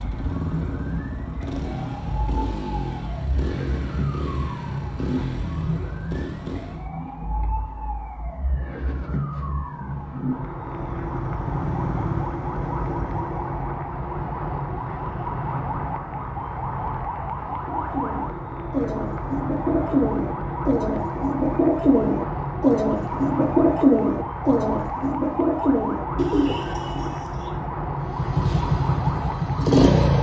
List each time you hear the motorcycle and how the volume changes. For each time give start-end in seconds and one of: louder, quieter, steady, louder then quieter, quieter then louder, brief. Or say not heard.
0.0-6.9 steady
10.7-13.5 brief
28.0-30.1 brief.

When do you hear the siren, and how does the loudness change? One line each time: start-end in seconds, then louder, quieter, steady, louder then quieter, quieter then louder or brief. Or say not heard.
0.0-30.1 steady.